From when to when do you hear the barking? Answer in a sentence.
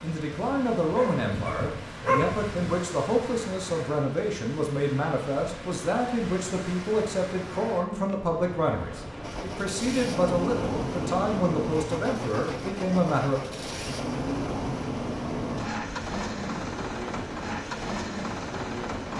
The barking can be heard from 0.9 to 2.5 s.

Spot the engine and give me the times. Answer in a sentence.
The engine can be heard from 9.2 to 19.1 s.